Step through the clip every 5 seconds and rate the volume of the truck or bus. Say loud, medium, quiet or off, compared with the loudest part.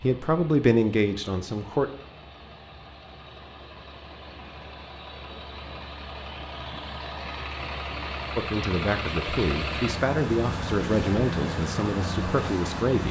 quiet, loud, loud.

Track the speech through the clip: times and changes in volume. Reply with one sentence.
You can hear the speech briefly from 0.0 to 1.9 s; and from 8.3 to 13.0 s, at a steady volume.